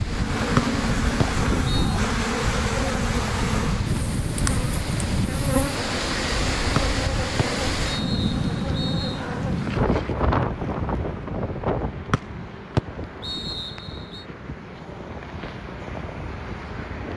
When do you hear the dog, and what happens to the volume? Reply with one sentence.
You can't hear the dog here.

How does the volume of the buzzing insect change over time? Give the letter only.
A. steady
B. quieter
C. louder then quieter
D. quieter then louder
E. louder
B.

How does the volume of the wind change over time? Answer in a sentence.
The loudness of the wind goes down.